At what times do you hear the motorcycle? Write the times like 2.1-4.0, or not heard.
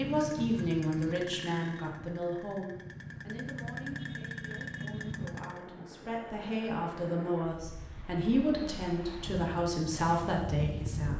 0.0-5.7.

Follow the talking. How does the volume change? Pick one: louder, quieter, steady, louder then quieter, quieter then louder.
quieter then louder.